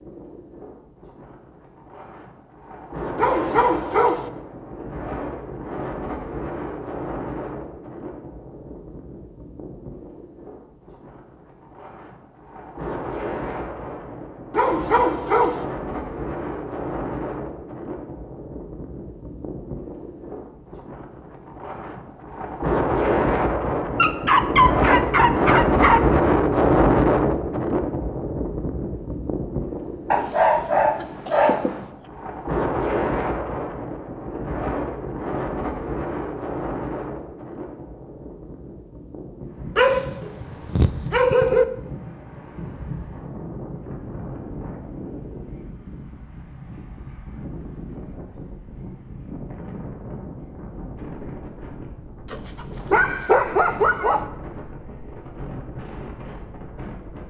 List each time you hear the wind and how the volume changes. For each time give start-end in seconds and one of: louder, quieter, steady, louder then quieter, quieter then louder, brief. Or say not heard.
0.0-57.2 louder then quieter.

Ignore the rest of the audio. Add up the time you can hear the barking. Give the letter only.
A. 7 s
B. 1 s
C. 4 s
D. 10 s
D.